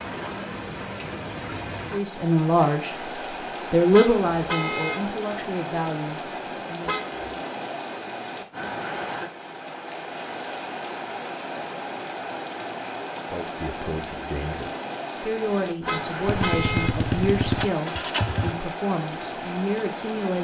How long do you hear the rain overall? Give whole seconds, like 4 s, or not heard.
20 s.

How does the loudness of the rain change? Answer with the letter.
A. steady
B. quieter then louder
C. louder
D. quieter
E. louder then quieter
A.